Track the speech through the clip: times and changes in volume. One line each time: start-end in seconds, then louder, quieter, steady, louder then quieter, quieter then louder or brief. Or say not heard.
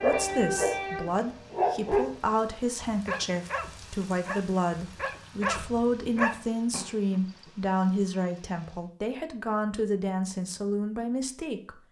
0.0-11.7 steady.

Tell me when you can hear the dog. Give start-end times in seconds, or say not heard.
0.0-7.5.